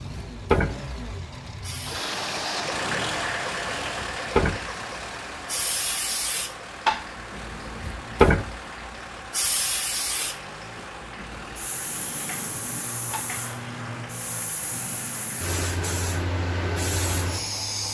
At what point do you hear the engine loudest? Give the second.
3 s.